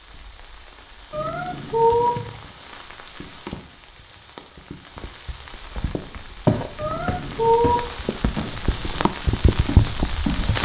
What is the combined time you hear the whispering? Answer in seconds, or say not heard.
not heard.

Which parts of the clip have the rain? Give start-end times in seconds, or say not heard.
0.0-10.6.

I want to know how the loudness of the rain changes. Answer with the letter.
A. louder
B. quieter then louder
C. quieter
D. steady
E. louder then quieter
A.